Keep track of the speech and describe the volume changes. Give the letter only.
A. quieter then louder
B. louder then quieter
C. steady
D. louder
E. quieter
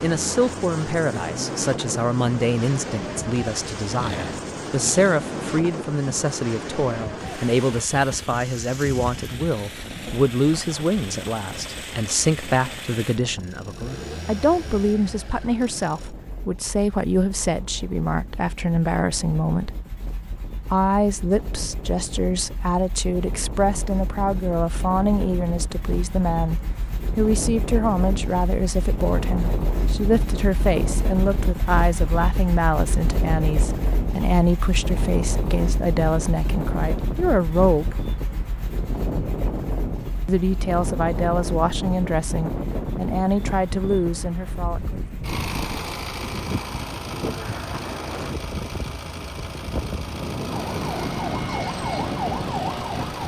C.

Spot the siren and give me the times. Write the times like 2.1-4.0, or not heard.
50.5-53.2.